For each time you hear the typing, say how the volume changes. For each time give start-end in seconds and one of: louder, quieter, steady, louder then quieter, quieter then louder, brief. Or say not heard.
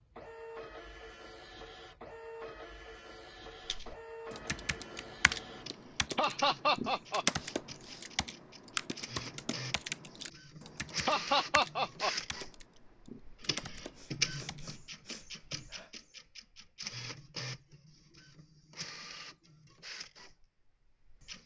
3.6-14.7 louder then quieter.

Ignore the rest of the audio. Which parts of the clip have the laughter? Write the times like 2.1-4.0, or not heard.
6.2-7.2, 11.1-12.1.